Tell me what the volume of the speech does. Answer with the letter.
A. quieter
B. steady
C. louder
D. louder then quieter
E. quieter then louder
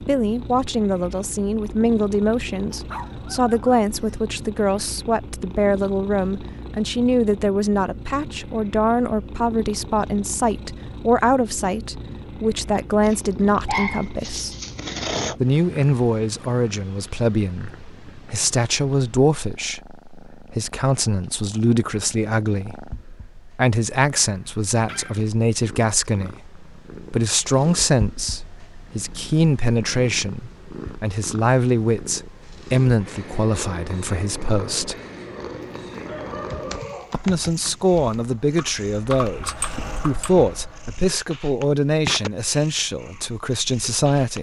B.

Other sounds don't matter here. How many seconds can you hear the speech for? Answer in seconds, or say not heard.
41 s.